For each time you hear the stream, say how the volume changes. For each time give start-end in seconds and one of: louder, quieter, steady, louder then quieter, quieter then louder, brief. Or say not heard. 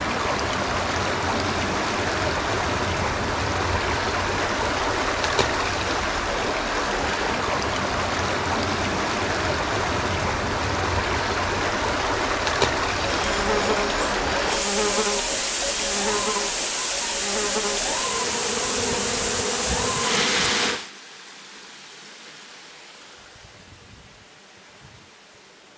0.0-25.7 quieter.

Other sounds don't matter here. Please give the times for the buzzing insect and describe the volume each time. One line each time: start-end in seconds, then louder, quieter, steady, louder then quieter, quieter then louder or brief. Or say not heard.
13.0-20.8 steady.